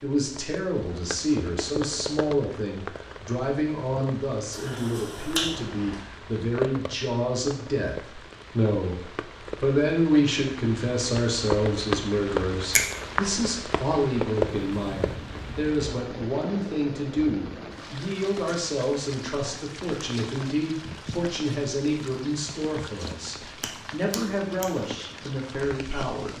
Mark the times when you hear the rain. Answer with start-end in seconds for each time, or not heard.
0.0-26.3.